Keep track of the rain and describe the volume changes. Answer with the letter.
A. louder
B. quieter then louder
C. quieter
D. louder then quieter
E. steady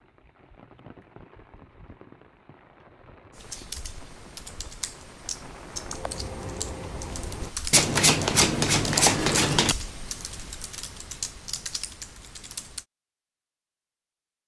A.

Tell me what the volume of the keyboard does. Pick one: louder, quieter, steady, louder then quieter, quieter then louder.
louder then quieter.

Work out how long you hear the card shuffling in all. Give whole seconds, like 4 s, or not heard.
2 s.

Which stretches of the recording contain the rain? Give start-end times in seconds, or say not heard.
0.0-7.5.